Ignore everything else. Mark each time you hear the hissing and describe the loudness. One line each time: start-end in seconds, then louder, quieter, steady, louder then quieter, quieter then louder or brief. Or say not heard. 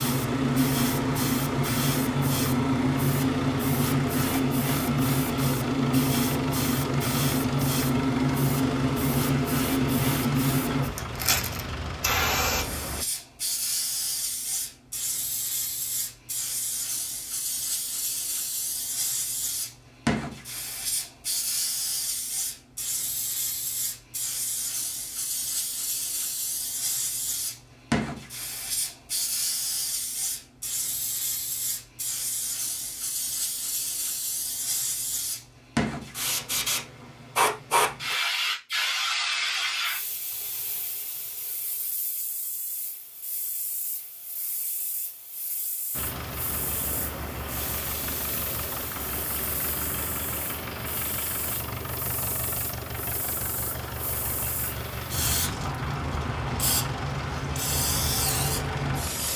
0.0-59.3 quieter.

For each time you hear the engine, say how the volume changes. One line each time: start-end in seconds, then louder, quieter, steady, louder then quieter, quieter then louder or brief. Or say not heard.
0.0-13.1 steady
45.9-59.3 steady.